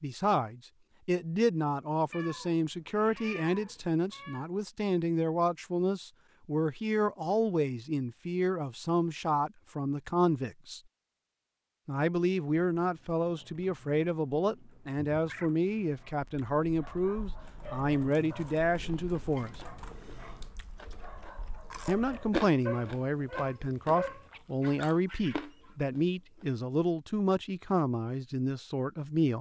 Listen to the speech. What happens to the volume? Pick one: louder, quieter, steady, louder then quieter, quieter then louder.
steady.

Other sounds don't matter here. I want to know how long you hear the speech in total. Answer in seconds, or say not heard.
26 s.